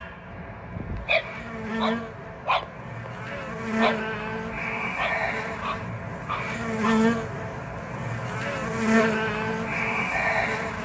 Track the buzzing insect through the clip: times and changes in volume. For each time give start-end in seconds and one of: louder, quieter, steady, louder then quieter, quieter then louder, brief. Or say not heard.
0.0-10.7 louder.